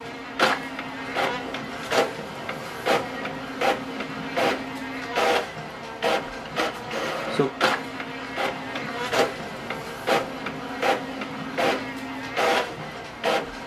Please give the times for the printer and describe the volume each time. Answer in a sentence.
You can hear the printer from 0.0 to 13.6 s, at a steady volume.